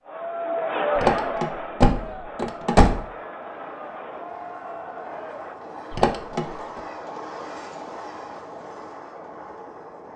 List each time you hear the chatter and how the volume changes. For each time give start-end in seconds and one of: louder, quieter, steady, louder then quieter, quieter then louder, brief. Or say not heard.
0.0-5.5 quieter.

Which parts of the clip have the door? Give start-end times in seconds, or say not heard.
0.9-3.0, 5.9-6.5.